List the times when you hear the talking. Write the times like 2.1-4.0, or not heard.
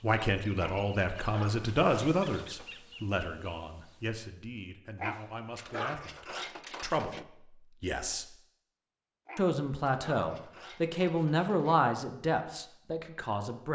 0.0-8.2, 9.3-13.6.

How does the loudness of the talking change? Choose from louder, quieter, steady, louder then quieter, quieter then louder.
quieter then louder.